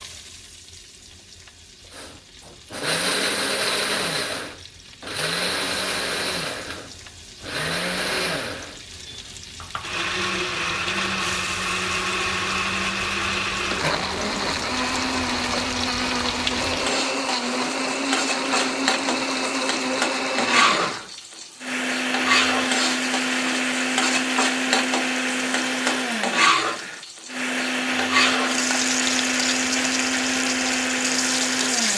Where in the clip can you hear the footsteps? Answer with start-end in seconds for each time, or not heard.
not heard.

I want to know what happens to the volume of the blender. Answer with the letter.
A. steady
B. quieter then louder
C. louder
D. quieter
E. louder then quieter
A.